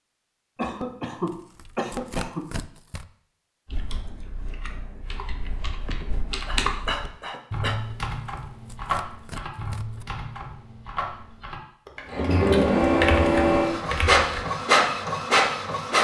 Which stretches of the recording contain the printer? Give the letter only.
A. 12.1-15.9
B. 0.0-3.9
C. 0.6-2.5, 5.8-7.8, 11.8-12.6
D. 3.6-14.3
A.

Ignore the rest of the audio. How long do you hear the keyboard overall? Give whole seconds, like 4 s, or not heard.
11 s.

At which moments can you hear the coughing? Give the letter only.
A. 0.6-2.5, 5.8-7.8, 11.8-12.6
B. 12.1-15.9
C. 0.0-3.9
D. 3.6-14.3
A.